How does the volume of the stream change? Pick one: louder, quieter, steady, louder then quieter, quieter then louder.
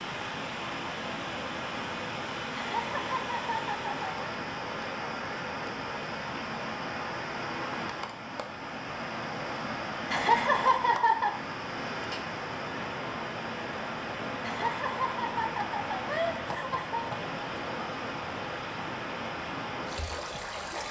steady.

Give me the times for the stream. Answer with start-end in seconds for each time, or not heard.
0.0-20.8.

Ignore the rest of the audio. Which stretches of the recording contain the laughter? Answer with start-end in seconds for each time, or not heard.
2.5-4.1, 10.1-11.3, 14.4-17.1.